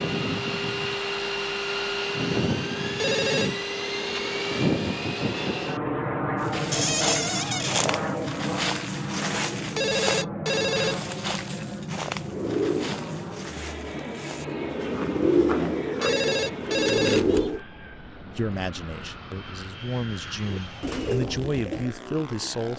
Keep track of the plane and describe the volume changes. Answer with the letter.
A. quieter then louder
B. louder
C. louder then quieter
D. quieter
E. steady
D.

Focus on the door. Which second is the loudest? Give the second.
7 s.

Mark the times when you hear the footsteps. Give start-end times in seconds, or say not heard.
6.4-16.2.